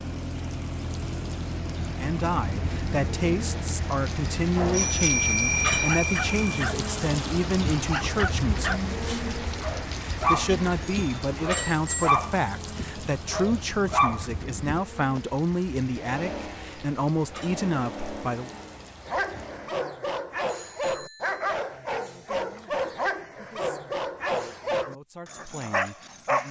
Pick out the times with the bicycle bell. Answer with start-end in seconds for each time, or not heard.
4.7-6.4, 10.8-12.1, 20.5-21.3.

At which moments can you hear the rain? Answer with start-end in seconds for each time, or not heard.
0.0-19.6.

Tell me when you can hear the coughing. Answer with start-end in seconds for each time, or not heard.
not heard.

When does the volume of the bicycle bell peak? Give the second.
5 s.